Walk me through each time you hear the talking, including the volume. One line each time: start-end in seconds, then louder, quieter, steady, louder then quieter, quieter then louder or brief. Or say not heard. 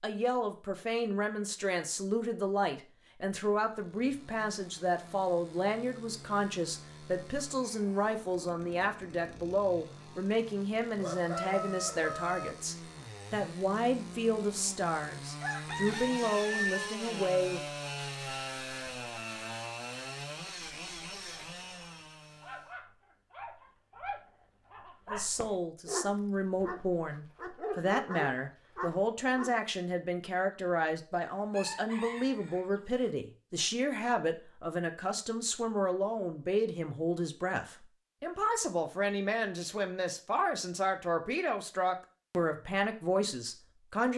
0.0-17.6 steady
25.1-44.1 steady.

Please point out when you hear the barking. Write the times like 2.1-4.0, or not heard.
21.1-29.6.